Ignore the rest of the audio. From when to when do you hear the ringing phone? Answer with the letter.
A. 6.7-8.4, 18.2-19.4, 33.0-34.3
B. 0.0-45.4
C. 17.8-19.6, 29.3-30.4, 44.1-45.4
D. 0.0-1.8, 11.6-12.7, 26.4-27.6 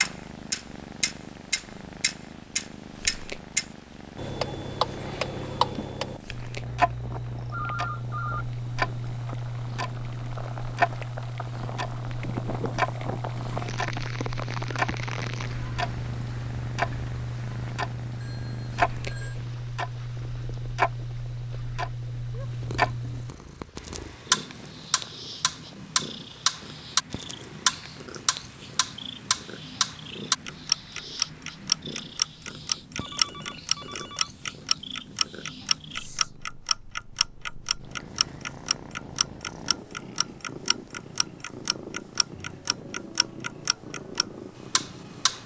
A.